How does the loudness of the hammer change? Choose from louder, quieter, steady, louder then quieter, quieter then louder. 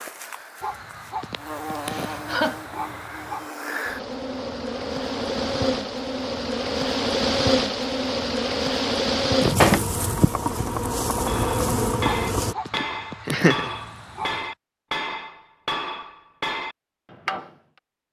steady.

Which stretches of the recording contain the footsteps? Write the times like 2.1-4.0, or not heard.
not heard.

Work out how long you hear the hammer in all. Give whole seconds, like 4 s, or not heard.
6 s.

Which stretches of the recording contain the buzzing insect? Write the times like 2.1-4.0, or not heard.
0.0-12.6.